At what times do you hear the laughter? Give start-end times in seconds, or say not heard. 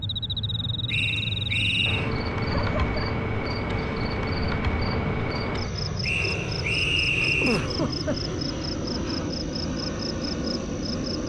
2.4-3.0, 7.4-8.3.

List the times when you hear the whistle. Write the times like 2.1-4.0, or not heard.
0.8-2.1, 6.0-7.7.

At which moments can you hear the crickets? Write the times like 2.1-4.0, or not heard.
0.0-11.2.